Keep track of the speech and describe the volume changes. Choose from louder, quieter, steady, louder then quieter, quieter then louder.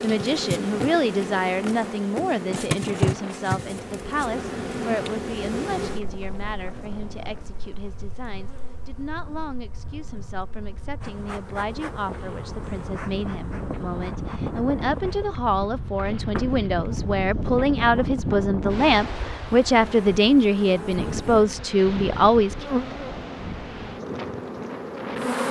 quieter then louder.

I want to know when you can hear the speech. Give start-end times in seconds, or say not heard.
0.0-22.6.